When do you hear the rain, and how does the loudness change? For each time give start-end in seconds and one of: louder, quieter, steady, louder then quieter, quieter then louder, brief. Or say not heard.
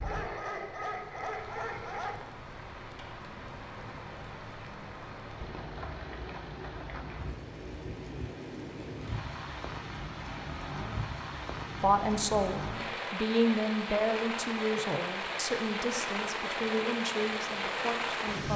0.0-18.5 louder.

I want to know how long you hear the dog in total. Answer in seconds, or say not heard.
2 s.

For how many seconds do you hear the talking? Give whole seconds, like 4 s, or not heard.
7 s.